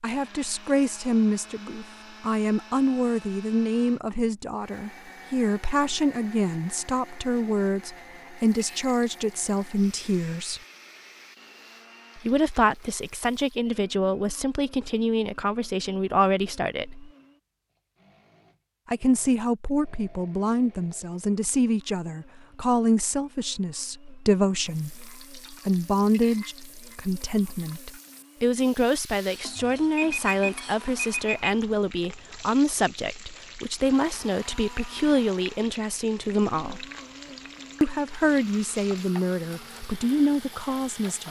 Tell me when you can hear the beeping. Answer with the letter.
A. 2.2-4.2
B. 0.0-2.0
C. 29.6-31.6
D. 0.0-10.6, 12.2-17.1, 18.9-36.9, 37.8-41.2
C.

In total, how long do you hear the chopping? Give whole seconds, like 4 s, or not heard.
not heard.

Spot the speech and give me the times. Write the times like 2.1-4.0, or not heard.
0.0-10.6, 12.2-17.1, 18.9-36.9, 37.8-41.2.